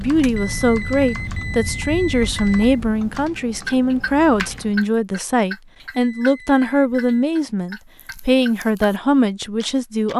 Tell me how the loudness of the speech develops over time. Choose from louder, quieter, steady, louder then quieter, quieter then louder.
steady.